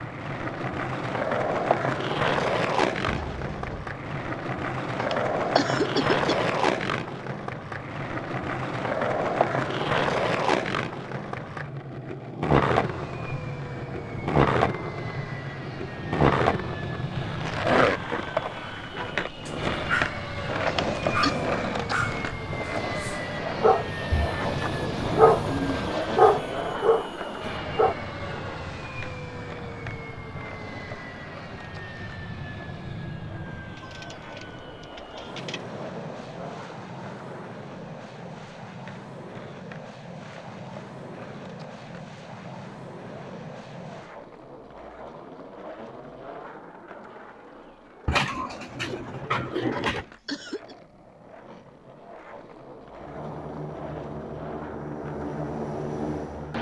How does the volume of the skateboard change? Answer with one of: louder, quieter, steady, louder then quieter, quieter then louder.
quieter.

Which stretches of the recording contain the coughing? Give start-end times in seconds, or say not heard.
5.0-6.5, 20.6-21.4, 49.7-50.8.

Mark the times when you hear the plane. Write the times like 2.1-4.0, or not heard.
12.7-44.2, 53.0-56.5.